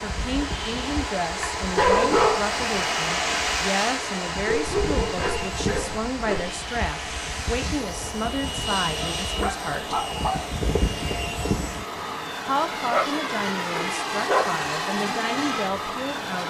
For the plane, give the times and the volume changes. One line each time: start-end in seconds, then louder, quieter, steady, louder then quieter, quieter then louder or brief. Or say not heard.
0.0-16.4 louder.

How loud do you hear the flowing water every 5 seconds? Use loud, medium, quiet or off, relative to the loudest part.
loud, medium, medium, medium.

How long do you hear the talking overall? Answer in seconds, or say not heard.
14 s.